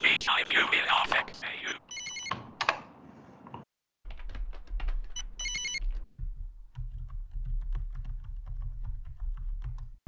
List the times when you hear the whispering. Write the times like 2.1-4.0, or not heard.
0.0-1.8.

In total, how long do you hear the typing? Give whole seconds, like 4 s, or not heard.
10 s.